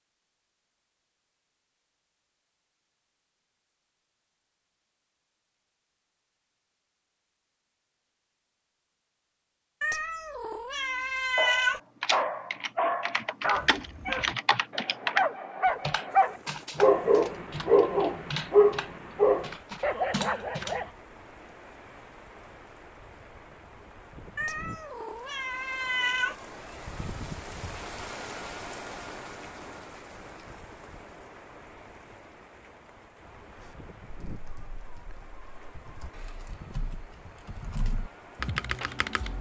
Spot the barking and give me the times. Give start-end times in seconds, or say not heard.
11.3-20.9.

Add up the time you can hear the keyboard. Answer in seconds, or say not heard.
15 s.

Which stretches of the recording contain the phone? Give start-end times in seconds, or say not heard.
not heard.